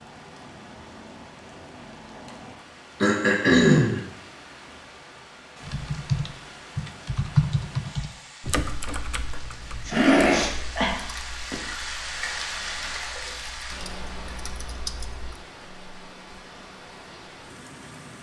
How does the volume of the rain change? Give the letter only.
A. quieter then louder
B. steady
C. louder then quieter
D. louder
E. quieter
C.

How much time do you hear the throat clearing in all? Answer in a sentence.
You can hear the throat clearing for 2 seconds altogether.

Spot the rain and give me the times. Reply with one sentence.
You can hear the rain from 0.0 to 18.1 s.